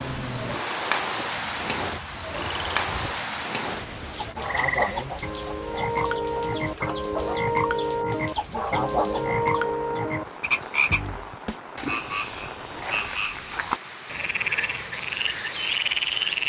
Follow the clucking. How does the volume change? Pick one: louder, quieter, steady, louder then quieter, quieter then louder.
quieter then louder.